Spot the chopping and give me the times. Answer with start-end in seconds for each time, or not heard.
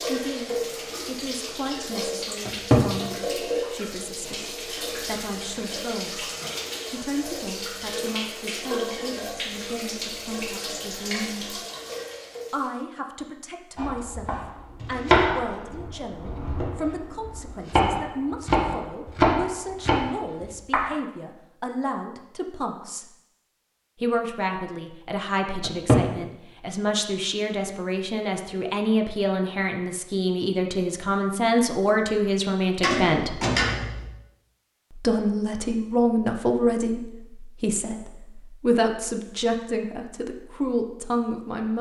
13.8-20.9.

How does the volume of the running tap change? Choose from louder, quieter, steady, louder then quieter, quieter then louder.
steady.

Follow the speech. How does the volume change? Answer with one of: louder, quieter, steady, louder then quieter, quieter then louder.
louder.